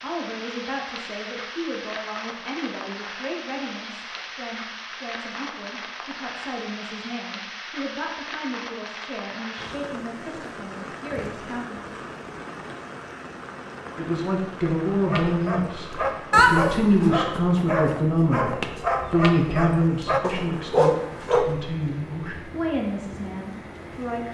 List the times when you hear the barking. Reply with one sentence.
The barking can be heard from 15.1 to 21.6 s.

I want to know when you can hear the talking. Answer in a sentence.
The talking can be heard from 0.0 to 11.9 s and from 13.9 to 24.3 s.